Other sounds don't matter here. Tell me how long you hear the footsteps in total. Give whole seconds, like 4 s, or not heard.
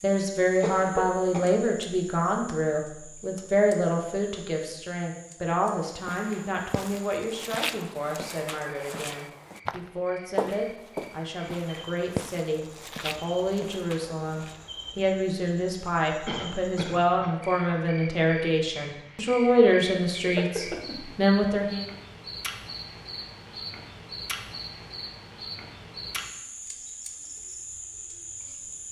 9 s.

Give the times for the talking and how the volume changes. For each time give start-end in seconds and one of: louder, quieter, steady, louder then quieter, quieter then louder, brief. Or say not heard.
0.0-21.9 quieter then louder.